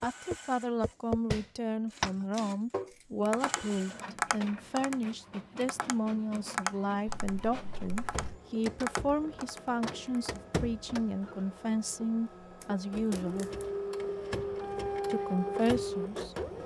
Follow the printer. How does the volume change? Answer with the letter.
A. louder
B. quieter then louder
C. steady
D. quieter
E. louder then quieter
A.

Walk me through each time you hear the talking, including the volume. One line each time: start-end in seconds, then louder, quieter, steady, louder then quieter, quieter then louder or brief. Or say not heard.
0.0-13.5 steady
15.1-16.4 brief.